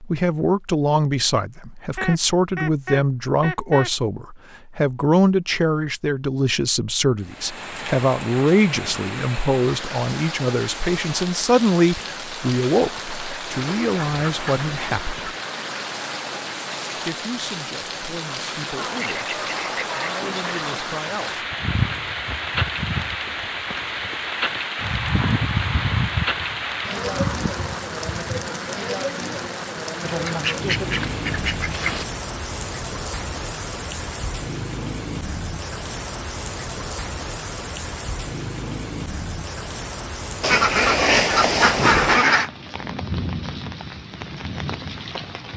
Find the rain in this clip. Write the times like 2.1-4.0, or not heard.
7.2-45.5.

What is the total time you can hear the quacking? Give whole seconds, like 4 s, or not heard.
10 s.